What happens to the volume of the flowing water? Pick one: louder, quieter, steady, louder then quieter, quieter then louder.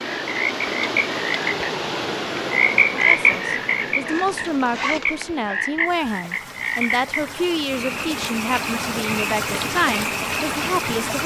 quieter then louder.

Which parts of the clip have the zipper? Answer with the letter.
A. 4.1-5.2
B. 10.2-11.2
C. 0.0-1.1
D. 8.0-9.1
A.